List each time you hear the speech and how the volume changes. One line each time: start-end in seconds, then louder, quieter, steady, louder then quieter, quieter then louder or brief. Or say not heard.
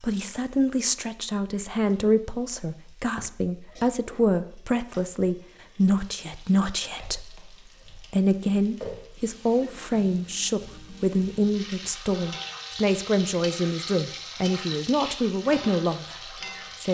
0.0-16.8 steady.